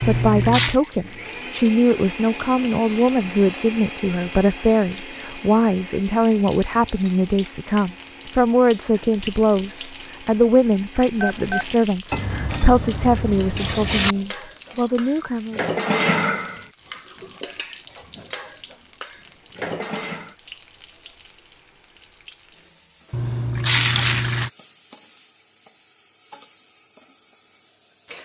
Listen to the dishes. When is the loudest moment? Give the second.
16 s.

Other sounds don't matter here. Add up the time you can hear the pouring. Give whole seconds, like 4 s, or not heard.
4 s.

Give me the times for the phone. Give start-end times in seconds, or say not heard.
11.2-11.8.